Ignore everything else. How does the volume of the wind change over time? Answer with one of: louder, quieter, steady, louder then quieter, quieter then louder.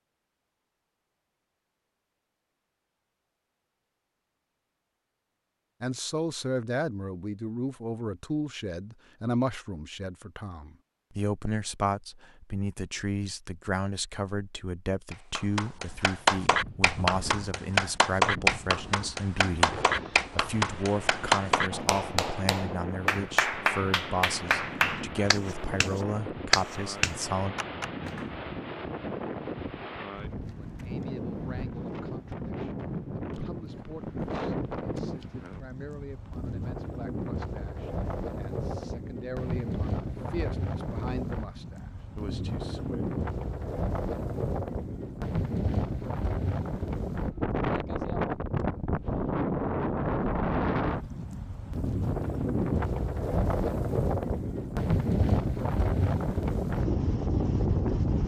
louder.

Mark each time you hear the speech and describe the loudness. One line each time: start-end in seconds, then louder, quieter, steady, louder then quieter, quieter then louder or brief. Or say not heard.
5.8-27.6 steady
30.6-43.0 louder.